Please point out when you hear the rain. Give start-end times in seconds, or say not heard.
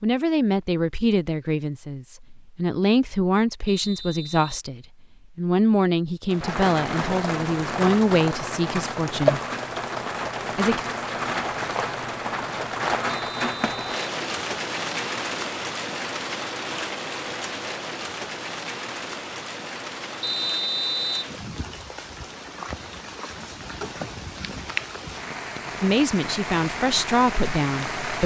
6.3-28.2.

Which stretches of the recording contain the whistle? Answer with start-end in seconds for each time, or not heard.
3.6-4.6, 13.1-13.9, 20.2-21.4.